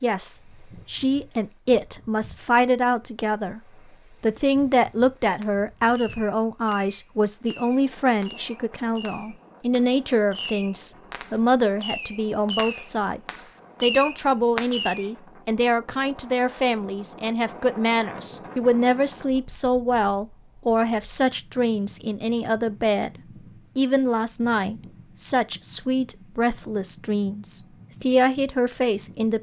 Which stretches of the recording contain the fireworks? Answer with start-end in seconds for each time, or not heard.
5.4-15.1.